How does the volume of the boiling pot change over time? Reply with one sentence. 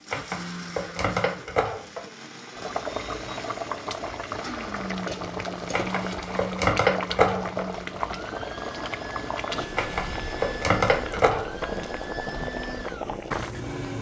The volume of the boiling pot stays about the same.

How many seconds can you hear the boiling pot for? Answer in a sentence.
The boiling pot can be heard for 11 seconds in total.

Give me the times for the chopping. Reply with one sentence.
You can hear the chopping from 0.1 to 2.1 s, from 5.7 to 7.7 s and from 9.8 to 11.8 s.